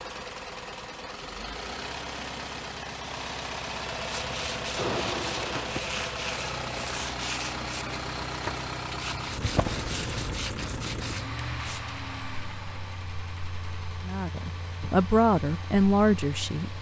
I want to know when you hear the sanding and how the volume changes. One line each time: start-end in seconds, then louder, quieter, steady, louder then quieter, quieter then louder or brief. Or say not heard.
4.0-11.8 steady.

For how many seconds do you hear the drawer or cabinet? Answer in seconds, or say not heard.
2 s.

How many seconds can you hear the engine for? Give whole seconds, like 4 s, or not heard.
17 s.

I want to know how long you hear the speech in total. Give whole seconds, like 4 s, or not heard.
3 s.